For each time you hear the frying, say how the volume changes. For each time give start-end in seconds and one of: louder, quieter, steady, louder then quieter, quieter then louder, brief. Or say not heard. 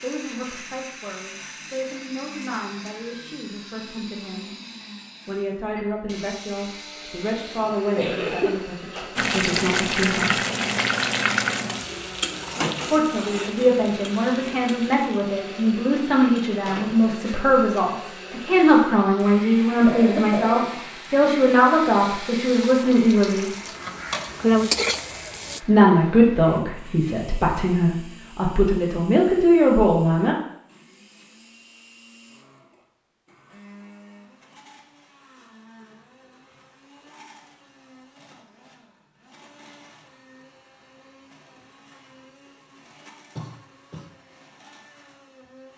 9.2-25.6 quieter then louder.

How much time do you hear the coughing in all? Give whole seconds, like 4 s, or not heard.
3 s.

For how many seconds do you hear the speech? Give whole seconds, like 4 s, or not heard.
25 s.